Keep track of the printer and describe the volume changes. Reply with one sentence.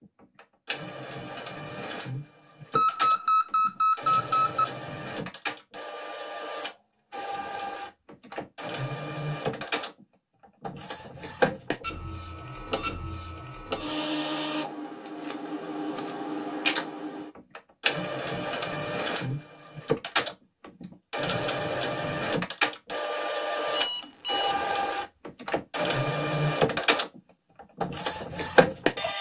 The volume of the printer goes up.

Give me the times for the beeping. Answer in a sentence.
The beeping can be heard from 2.8 to 4.7 s and from 23.6 to 24.6 s.